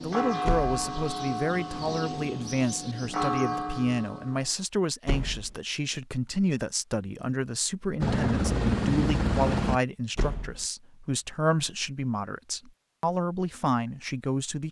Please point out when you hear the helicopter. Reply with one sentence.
You can hear the helicopter from 8.0 to 9.8 s.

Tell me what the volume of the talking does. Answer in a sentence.
The loudness of the talking stays about the same.